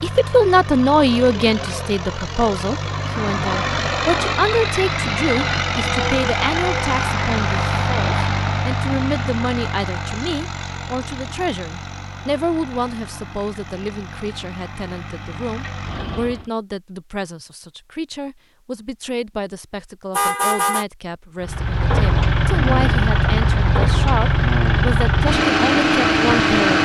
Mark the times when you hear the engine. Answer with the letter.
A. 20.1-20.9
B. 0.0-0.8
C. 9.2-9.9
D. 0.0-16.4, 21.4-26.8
D.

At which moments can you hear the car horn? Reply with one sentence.
You can hear the car horn from 20.1 to 20.9 s.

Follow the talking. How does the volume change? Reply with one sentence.
The loudness of the talking goes down.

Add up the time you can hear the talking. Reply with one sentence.
The talking can be heard for 27 seconds in total.